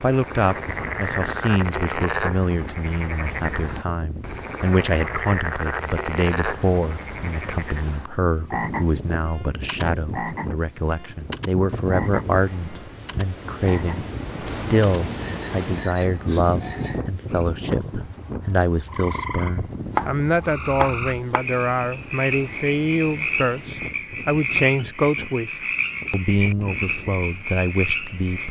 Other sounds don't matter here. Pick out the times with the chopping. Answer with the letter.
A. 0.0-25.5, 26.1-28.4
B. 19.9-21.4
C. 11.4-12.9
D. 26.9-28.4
B.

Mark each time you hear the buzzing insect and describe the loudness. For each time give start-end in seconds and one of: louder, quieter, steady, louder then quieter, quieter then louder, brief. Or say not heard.
not heard.